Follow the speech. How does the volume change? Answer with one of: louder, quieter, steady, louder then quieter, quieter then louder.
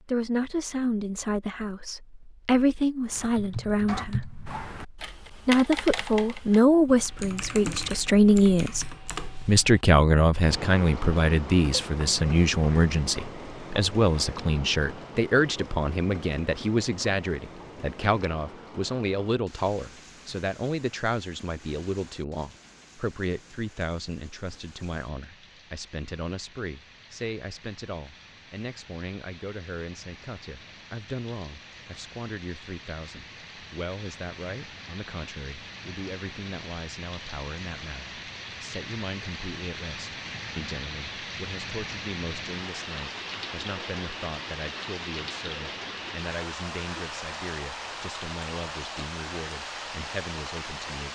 quieter.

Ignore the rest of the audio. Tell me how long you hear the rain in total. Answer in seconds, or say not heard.
41 s.